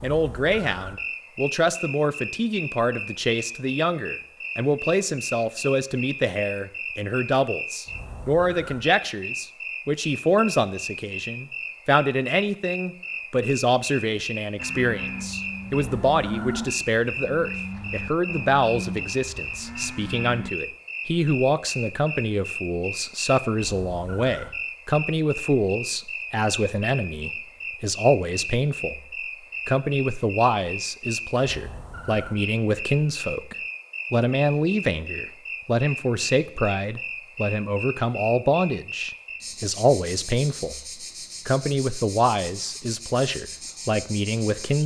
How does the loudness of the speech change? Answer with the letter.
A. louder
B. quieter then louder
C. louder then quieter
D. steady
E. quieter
D.